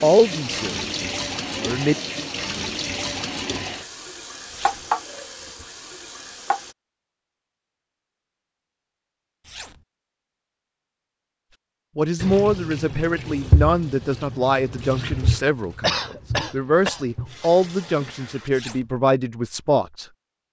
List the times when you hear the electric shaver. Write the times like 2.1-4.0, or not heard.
not heard.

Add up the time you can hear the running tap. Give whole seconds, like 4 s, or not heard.
13 s.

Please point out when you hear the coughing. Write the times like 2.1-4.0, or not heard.
15.8-17.1.